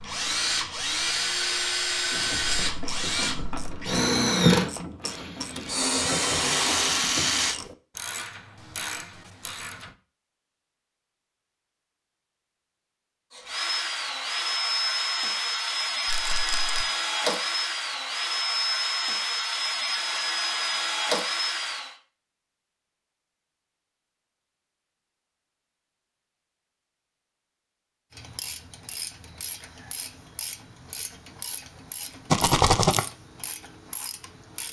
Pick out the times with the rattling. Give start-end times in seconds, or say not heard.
5.5-7.5, 16.1-16.9, 32.3-33.0.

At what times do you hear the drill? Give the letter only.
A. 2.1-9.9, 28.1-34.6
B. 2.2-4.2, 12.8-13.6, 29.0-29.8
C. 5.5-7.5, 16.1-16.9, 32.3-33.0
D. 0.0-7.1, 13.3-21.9
D.